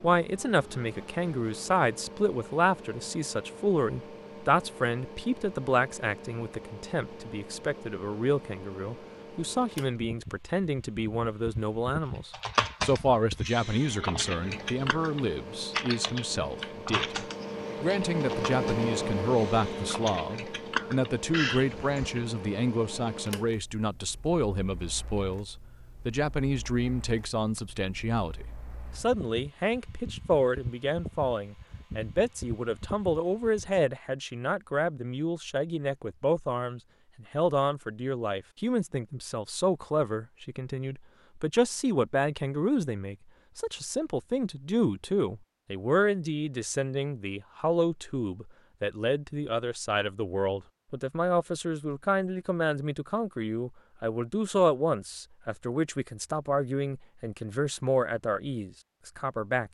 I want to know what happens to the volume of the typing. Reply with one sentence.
The loudness of the typing goes down, then up.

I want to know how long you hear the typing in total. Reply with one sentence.
The typing can be heard for 10 seconds in total.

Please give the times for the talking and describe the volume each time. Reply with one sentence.
You can hear the talking from 0.0 to 59.6 s, at a steady volume.